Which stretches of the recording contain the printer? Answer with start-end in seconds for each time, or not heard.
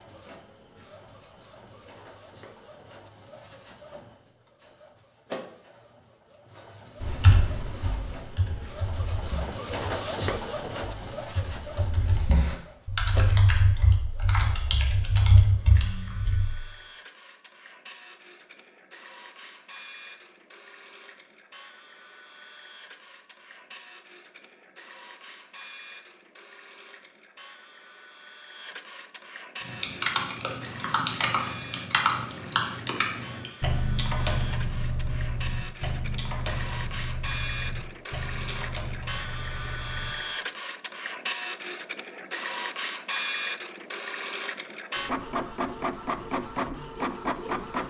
0.0-47.8.